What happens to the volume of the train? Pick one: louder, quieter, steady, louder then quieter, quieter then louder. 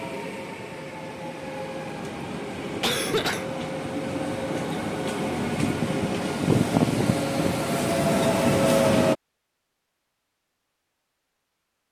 louder.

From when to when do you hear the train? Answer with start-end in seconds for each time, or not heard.
0.0-9.2.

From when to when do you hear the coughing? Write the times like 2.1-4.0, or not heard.
2.8-3.5.